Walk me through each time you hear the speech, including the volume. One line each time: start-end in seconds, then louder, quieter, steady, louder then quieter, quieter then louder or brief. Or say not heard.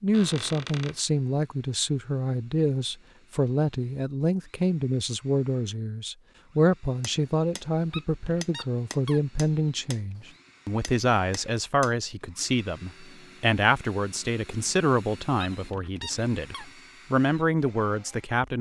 0.0-18.5 steady.